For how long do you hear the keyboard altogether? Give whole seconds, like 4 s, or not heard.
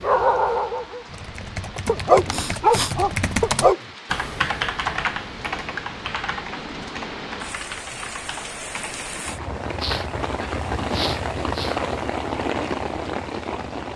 9 s.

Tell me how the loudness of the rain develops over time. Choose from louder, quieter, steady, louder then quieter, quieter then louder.
louder.